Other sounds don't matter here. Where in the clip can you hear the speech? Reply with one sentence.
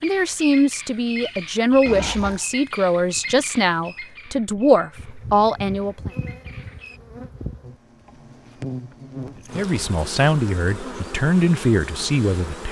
The speech can be heard from 0.0 to 6.1 s and from 9.6 to 12.6 s.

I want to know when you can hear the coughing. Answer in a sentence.
The coughing can't be heard in this clip.